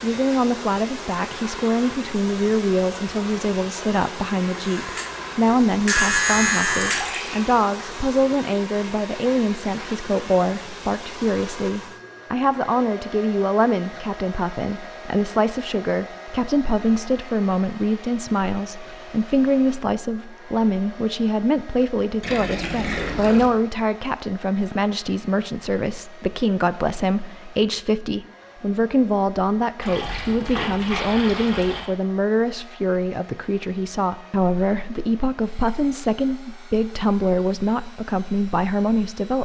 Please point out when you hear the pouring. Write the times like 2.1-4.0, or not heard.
6.8-7.6, 22.2-23.5, 29.8-31.9.